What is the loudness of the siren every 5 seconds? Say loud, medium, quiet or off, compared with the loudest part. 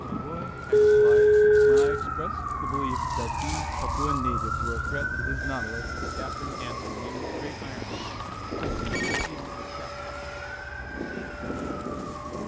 loud, medium, medium.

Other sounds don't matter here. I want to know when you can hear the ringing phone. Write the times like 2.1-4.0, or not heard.
0.7-1.8, 8.6-9.3.